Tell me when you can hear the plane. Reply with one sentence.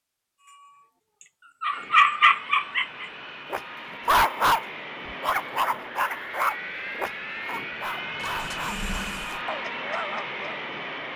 The plane can be heard from 1.7 to 11.1 s.